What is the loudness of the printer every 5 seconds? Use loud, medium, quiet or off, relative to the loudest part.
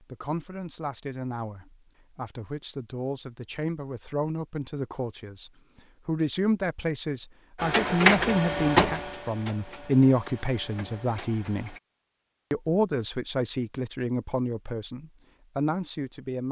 off, loud, quiet, off.